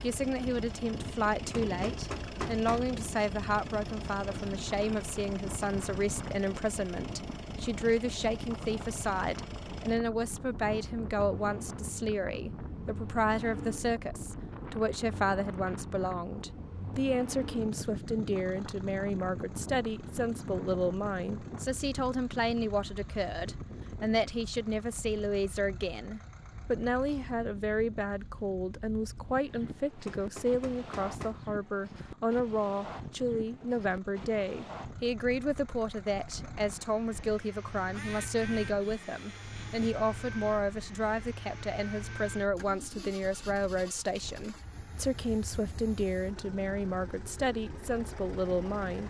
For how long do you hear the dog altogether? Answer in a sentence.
You can't hear the dog here.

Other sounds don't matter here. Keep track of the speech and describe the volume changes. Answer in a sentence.
The volume of the speech stays about the same.